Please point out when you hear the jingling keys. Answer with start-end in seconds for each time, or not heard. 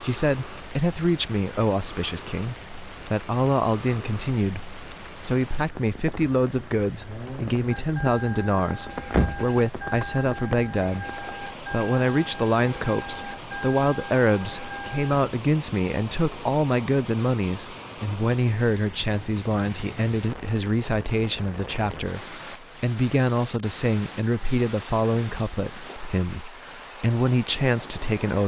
9.1-11.3.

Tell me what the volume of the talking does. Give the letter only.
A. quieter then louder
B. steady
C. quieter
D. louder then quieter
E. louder
B.